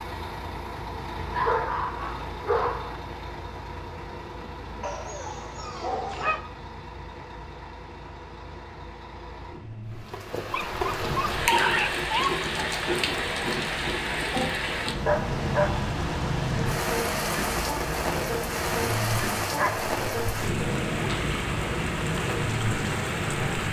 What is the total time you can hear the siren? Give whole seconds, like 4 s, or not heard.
not heard.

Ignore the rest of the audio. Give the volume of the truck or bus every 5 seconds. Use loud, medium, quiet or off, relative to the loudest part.
loud, medium, medium, loud, loud.